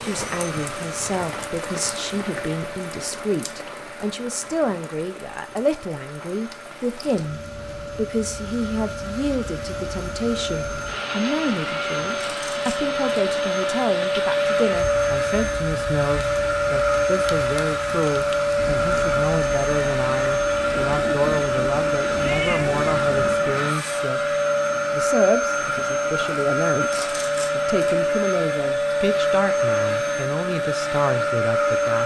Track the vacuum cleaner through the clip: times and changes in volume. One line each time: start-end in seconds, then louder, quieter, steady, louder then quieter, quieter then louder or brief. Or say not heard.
0.0-32.0 louder.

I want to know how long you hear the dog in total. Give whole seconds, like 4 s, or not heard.
not heard.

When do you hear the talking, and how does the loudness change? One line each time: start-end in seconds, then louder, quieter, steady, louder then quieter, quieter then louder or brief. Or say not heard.
0.0-32.0 steady.